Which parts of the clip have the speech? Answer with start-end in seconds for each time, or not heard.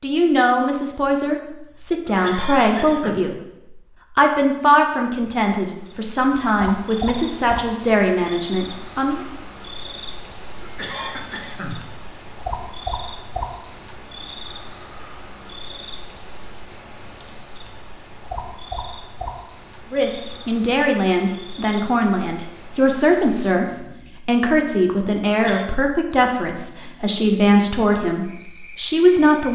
0.0-9.2, 19.9-29.5.